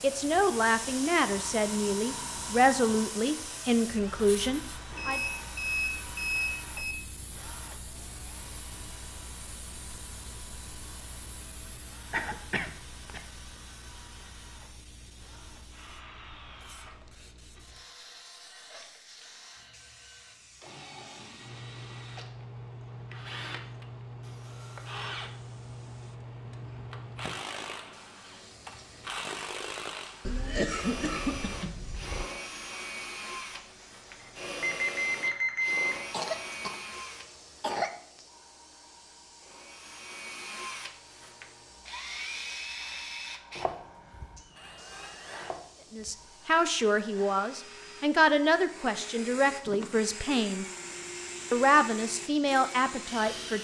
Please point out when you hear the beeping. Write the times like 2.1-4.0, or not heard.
4.9-7.0, 34.2-36.0.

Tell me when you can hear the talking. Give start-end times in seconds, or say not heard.
0.0-5.2, 45.9-50.6, 51.5-53.6.